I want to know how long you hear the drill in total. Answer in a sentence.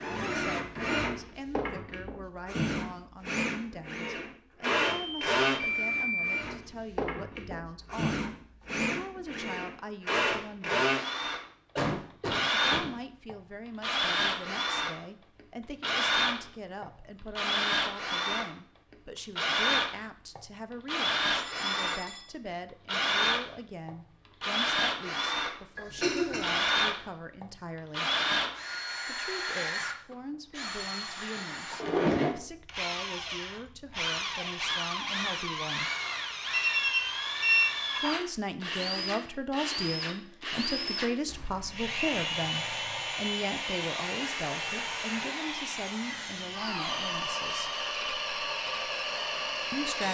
You can hear the drill for 50 seconds altogether.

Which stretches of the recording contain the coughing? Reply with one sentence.
The coughing can be heard from 11.8 to 12.9 s and from 25.8 to 26.6 s.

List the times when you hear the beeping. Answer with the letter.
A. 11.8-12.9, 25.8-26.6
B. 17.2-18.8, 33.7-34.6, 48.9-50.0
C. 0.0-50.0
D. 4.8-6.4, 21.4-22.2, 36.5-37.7
D.